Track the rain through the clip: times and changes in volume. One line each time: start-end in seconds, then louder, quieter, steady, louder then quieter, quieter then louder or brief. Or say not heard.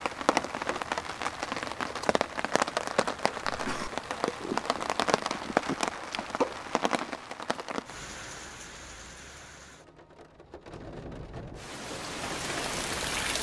0.0-13.3 quieter then louder.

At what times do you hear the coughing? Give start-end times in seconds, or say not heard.
3.5-3.9.